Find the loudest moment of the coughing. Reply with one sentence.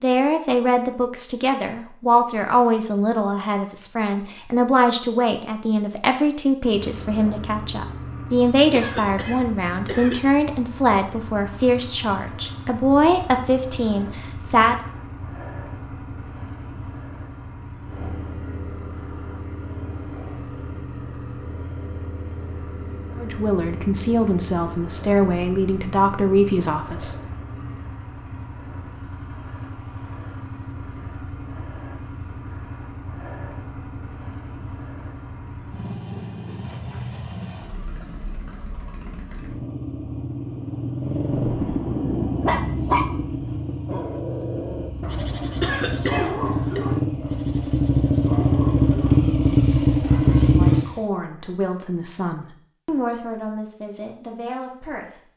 The loudest moment of the coughing is at 46 seconds.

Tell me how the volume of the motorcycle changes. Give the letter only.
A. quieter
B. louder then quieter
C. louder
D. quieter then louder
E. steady
C.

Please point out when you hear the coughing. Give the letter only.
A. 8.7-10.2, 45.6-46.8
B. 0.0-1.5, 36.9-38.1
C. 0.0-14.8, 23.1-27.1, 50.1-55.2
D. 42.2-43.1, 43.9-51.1
A.